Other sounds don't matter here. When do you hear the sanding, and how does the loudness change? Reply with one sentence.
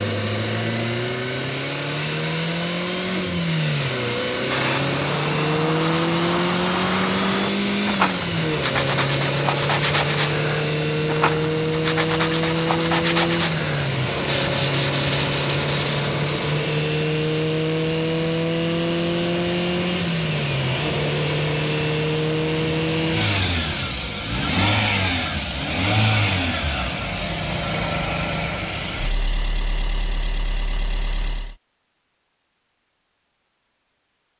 You can hear the sanding from 4.5 to 16.1 s, at a steady volume.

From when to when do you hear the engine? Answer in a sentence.
The engine can be heard from 0.0 to 31.6 s.